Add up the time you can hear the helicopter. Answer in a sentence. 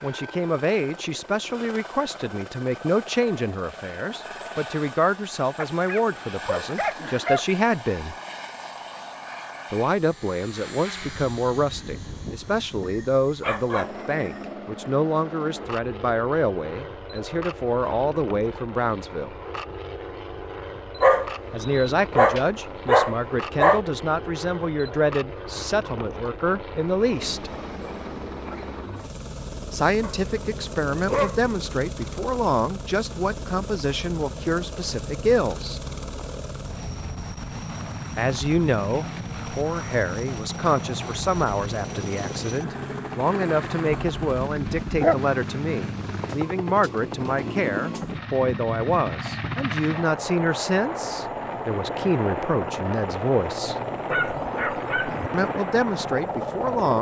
You can hear the helicopter for 57 seconds altogether.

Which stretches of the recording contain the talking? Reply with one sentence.
The talking can be heard from 0.0 to 8.2 s, from 9.7 to 19.4 s, from 21.5 to 27.6 s, from 29.7 to 35.8 s, from 38.1 to 53.8 s and from 55.3 to 56.9 s.